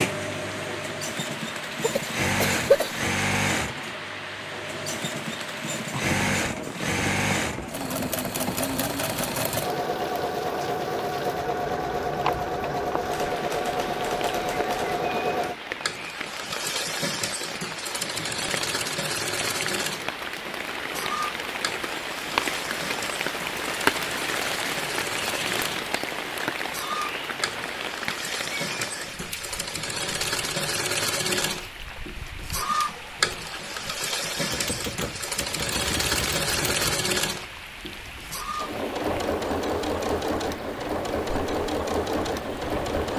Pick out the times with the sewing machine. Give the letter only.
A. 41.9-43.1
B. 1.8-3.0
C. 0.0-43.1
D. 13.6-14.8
C.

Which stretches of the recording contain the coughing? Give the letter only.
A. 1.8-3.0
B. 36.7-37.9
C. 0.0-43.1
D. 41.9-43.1
A.